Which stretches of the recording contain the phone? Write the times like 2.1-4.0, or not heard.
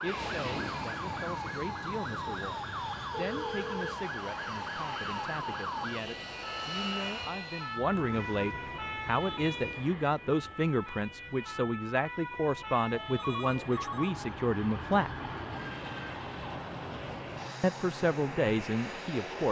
3.1-4.0, 12.9-14.3.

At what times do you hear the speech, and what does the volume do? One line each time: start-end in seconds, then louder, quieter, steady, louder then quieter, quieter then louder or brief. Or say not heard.
0.0-15.1 louder
17.6-19.4 brief.